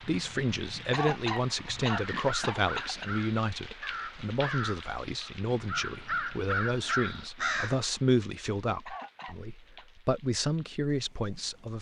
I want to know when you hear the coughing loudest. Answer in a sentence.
The loudest moment of the coughing is at 1 second.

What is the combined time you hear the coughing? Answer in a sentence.
The coughing can be heard for 3 seconds in total.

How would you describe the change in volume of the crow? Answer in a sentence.
The volume of the crow goes up.